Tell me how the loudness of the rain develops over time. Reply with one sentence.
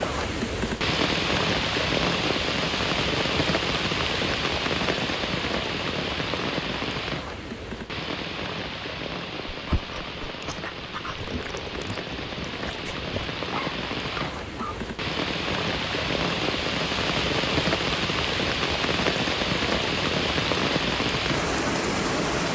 The loudness of the rain goes down, then up.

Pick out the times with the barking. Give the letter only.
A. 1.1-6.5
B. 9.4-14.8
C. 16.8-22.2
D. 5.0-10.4
B.